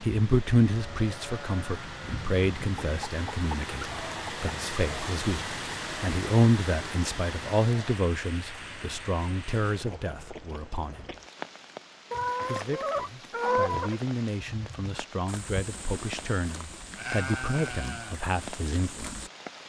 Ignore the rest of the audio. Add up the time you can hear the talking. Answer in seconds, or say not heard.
18 s.